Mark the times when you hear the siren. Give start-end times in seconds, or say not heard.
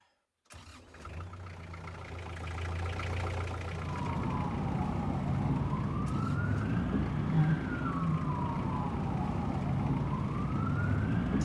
3.6-11.4.